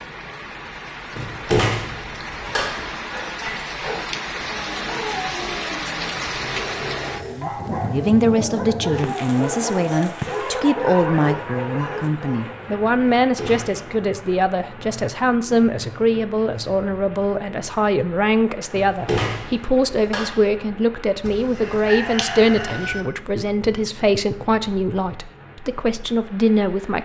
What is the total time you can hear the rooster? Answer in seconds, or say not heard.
2 s.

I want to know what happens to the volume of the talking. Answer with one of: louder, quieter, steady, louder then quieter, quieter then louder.
steady.